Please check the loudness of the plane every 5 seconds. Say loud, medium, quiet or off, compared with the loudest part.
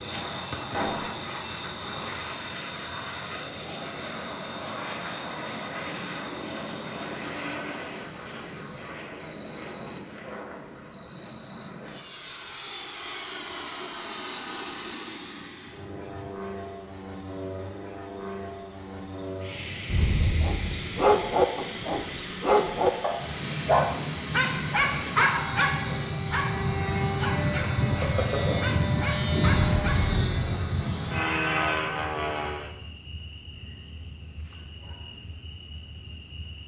medium, medium, medium, medium, medium, loud, loud, off.